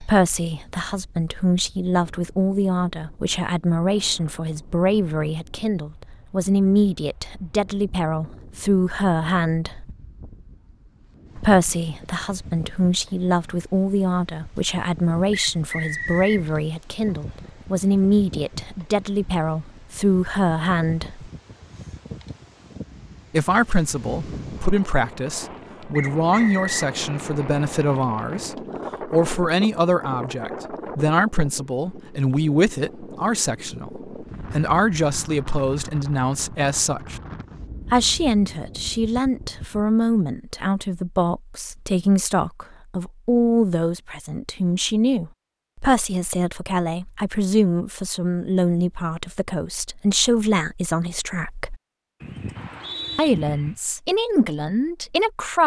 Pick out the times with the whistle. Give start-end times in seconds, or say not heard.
15.3-16.4, 25.9-26.9, 52.5-53.3.